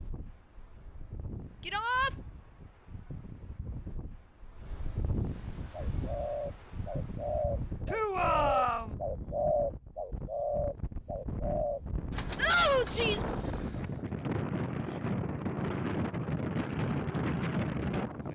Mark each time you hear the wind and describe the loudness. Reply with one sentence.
The wind can be heard from 0.0 to 18.3 s, getting louder.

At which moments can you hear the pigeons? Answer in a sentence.
You can hear the pigeons from 5.7 to 14.0 s.